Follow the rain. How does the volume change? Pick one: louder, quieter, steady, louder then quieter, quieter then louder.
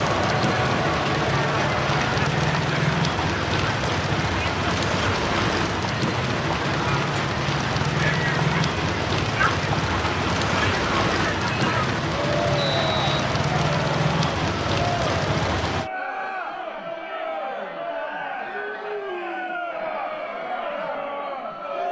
steady.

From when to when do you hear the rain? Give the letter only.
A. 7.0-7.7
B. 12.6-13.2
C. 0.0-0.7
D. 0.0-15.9
D.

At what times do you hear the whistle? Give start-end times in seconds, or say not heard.
12.6-13.2.